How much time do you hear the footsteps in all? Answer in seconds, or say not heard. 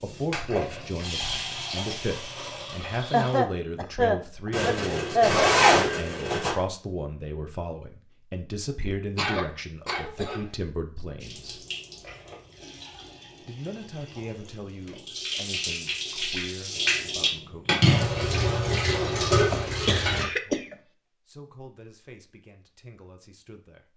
not heard.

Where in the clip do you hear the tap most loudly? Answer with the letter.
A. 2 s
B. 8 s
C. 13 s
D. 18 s
D.